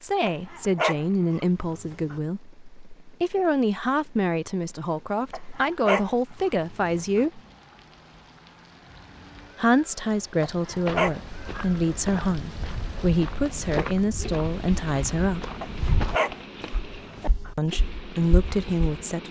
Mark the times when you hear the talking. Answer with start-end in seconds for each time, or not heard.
0.0-7.4, 9.6-15.4, 17.6-19.2.